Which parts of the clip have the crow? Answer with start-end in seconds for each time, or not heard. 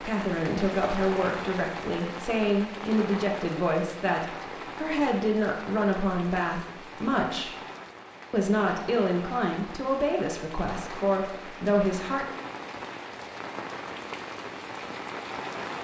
not heard.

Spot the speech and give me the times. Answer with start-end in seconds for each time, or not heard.
0.0-7.5, 8.3-12.2.